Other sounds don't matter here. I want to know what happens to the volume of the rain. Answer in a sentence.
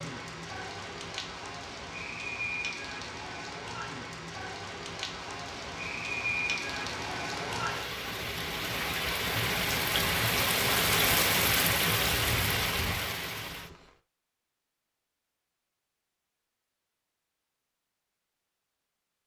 The loudness of the rain goes up.